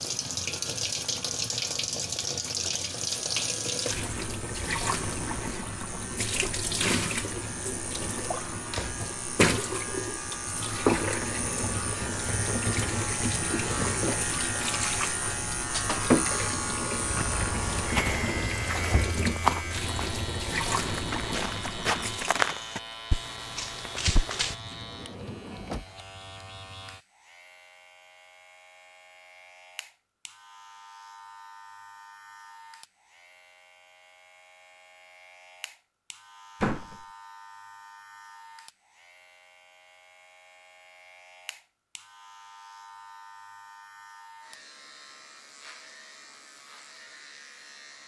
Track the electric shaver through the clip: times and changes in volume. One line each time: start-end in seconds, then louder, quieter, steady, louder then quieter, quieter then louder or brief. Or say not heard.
0.0-48.0 louder then quieter.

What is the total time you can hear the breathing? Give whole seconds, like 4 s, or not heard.
not heard.